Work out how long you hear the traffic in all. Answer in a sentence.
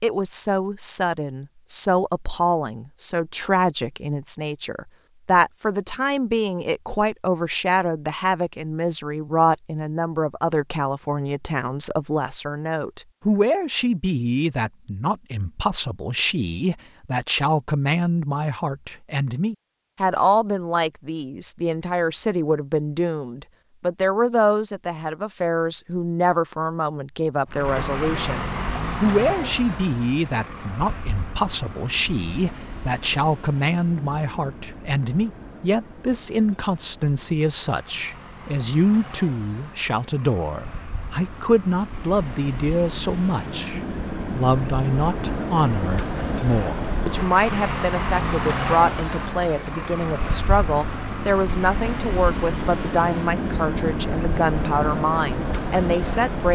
You can hear the traffic for 29 seconds altogether.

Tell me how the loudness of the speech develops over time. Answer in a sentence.
The loudness of the speech stays about the same.